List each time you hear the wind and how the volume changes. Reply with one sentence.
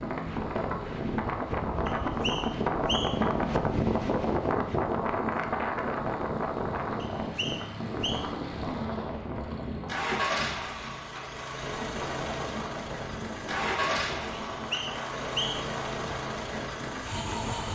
The wind can be heard from 0.0 to 17.6 s, getting quieter.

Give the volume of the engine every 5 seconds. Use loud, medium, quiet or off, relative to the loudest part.
medium, medium, loud, loud.